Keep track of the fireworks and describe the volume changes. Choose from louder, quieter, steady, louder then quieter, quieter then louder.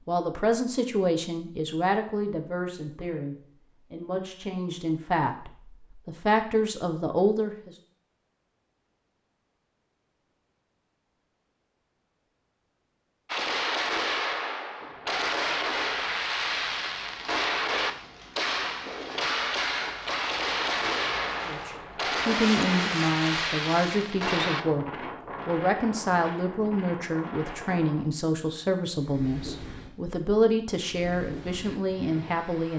steady.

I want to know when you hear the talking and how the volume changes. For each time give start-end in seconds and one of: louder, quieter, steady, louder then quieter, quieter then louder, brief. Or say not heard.
0.1-7.8 quieter then louder
21.4-32.7 steady.